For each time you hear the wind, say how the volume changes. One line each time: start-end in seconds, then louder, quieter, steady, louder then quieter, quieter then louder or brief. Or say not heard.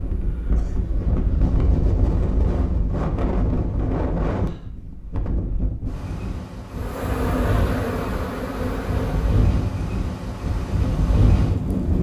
0.0-11.9 quieter then louder.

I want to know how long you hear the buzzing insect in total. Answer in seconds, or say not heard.
3 s.